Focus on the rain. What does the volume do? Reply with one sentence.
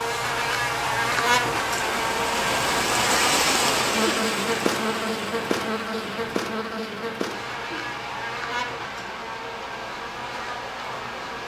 The volume of the rain goes up, then down.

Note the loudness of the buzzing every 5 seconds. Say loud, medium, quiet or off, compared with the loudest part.
loud, medium, medium.